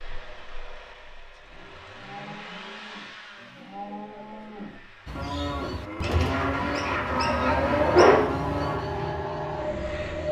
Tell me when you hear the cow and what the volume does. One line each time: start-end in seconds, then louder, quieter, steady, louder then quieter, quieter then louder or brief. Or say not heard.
1.9-8.8 louder.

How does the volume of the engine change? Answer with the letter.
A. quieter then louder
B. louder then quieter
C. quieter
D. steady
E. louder
A.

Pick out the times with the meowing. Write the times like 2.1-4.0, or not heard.
6.8-8.3.